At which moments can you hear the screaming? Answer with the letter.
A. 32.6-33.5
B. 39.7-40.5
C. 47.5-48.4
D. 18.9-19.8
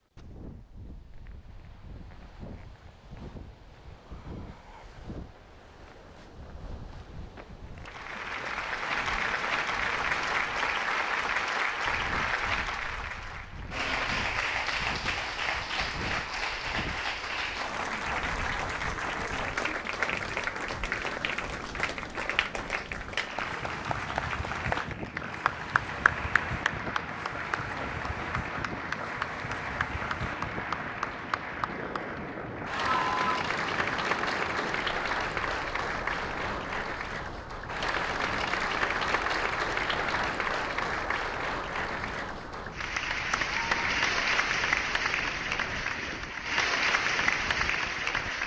A.